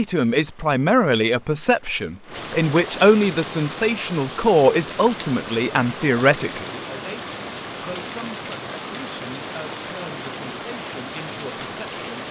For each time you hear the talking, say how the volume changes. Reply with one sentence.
You can hear the talking from 0.0 to 12.2 s, getting quieter.